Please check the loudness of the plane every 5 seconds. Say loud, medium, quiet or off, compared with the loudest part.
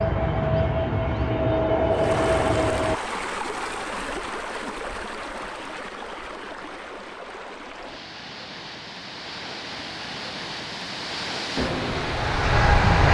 loud, off, loud.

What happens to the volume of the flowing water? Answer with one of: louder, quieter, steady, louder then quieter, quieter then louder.
quieter then louder.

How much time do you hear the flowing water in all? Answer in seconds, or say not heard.
11 s.